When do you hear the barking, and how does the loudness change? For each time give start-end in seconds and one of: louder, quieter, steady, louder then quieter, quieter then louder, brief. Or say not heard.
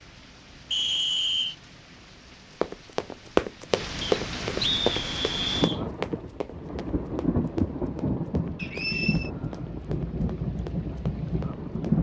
not heard.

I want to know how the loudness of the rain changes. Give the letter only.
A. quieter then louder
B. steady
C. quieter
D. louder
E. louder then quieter
D.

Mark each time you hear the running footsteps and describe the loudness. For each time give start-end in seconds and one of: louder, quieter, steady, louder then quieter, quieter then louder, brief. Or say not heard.
2.6-11.9 quieter.